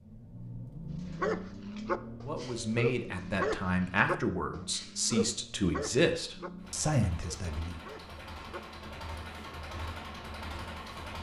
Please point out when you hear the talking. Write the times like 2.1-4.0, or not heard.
2.2-7.8.